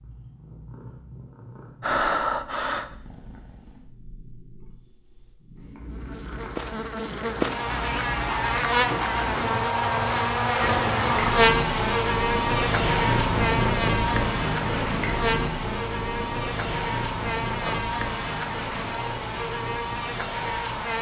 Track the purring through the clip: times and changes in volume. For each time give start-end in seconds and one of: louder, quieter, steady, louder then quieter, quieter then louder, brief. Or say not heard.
0.0-20.9 louder then quieter.